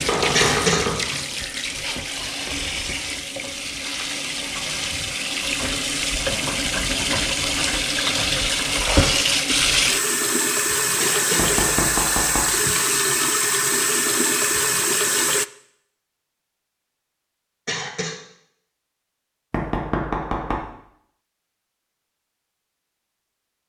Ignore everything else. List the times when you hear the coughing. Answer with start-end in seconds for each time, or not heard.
0.3-0.8, 10.9-11.5, 17.6-18.2.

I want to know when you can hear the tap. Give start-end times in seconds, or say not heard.
0.0-15.4.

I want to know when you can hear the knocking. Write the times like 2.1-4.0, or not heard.
0.1-1.1, 11.3-12.5, 19.5-20.6.